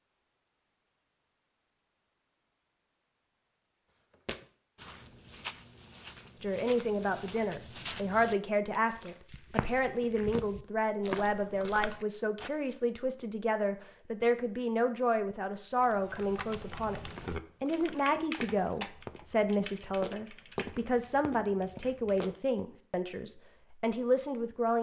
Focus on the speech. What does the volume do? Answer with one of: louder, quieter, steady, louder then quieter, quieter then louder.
steady.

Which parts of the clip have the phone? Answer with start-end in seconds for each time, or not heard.
not heard.